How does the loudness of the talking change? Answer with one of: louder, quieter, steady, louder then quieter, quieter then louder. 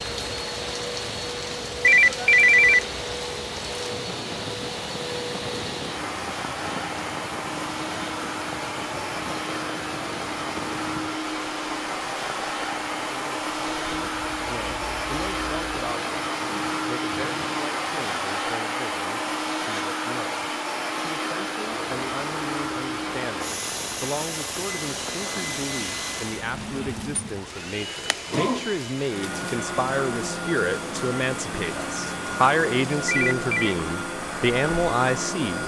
louder.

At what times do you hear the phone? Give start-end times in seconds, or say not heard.
1.8-2.9, 33.0-33.8.